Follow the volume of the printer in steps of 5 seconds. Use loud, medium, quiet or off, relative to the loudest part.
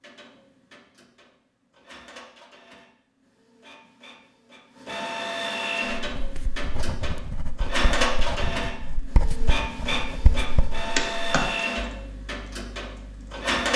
quiet, loud, loud.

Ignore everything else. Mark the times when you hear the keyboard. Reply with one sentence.
You can hear the keyboard from 10.9 to 13.4 s.